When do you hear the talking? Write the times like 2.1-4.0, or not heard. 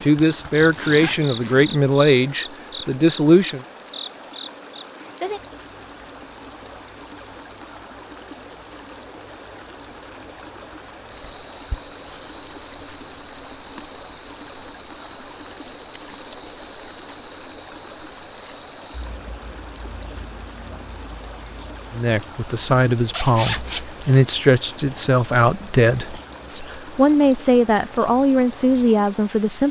0.0-3.6, 21.9-29.6.